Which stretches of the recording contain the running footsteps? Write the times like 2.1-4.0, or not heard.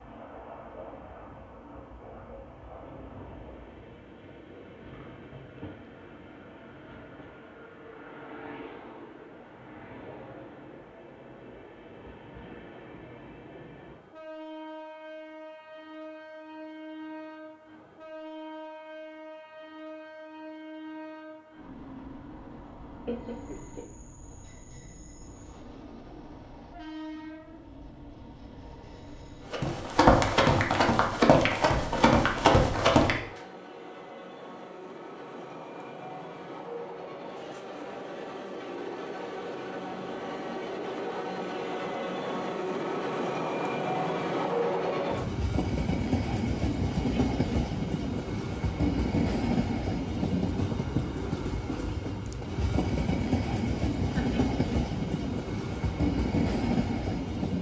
29.5-33.1.